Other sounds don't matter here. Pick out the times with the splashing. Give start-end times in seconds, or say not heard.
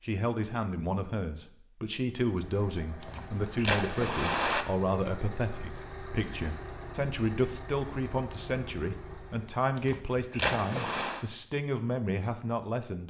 3.0-4.7, 9.8-11.2.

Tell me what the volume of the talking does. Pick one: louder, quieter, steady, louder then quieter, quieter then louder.
steady.